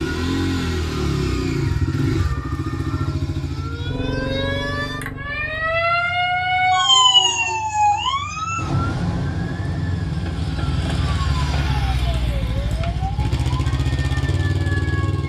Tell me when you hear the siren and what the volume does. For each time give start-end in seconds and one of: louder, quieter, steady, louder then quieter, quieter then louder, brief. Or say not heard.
0.0-15.2 louder then quieter.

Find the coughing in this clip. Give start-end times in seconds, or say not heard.
not heard.